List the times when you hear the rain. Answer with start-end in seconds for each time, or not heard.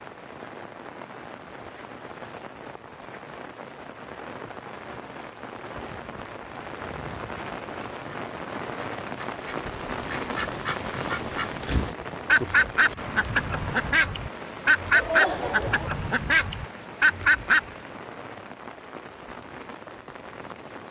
0.0-20.8.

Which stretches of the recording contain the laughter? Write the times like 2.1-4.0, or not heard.
14.9-16.1.